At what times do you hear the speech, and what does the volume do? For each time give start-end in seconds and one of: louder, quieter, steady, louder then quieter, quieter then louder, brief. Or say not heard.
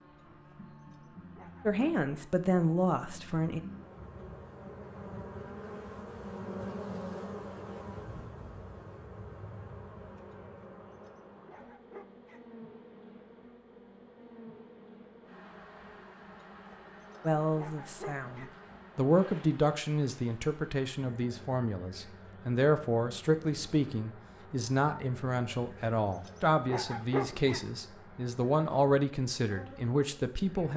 1.6-3.6 brief
17.2-30.7 steady.